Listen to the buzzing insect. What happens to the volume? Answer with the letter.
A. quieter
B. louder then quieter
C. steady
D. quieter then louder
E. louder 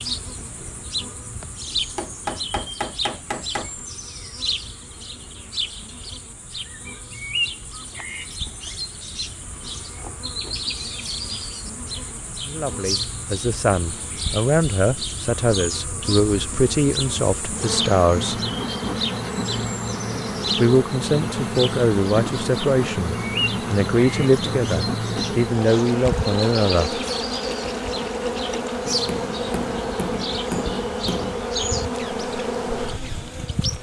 E.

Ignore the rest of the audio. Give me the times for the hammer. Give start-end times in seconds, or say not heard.
1.9-3.7, 28.9-31.4.